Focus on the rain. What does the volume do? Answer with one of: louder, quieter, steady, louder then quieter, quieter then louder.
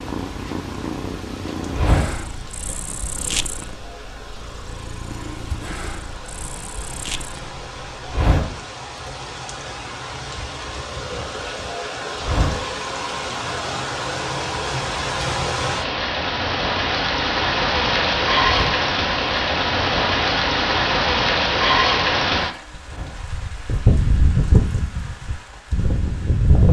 louder.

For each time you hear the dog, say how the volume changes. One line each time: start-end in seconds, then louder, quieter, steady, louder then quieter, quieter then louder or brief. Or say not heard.
not heard.